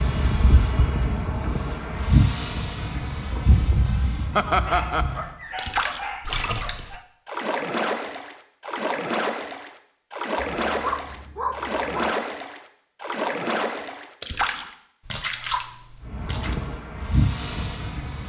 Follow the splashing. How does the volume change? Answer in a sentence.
The volume of the splashing stays about the same.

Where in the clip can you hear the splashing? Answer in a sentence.
The splashing can be heard from 5.5 to 16.6 s.